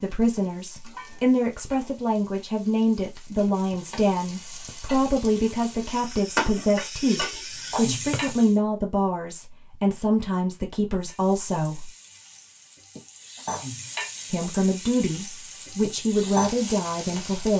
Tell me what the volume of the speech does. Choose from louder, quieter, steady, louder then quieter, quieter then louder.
steady.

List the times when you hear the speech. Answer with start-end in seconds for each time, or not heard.
0.0-11.9, 14.3-17.5.